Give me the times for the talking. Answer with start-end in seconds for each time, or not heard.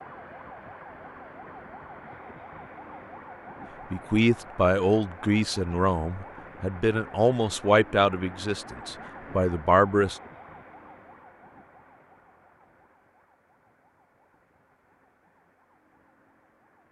3.9-10.2.